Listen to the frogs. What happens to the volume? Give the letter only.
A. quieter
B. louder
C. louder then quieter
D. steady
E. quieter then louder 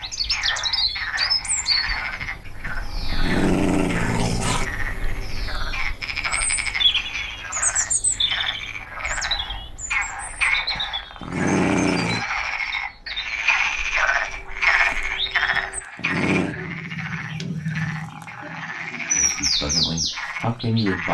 C.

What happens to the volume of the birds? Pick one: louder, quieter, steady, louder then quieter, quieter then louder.
quieter then louder.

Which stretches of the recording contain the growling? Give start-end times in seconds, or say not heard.
2.6-4.7, 10.8-12.2, 15.5-16.6.